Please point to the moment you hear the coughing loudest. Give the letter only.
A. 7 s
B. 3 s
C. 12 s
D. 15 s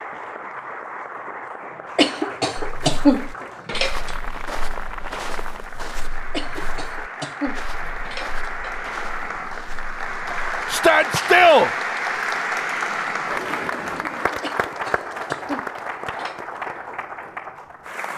B.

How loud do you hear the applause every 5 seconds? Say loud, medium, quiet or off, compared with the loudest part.
medium, medium, loud, medium.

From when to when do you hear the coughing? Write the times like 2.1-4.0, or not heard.
1.9-4.1, 6.3-8.8, 14.4-16.4.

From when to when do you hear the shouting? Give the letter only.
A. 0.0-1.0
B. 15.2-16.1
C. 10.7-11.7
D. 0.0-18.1
C.